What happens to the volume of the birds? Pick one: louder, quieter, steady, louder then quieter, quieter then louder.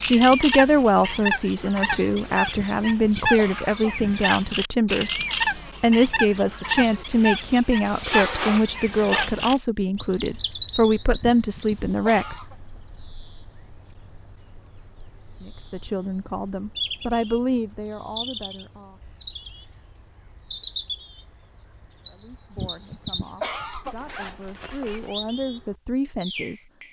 quieter.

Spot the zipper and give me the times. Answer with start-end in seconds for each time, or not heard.
7.8-9.6, 23.9-25.1.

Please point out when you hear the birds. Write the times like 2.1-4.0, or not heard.
0.0-26.8.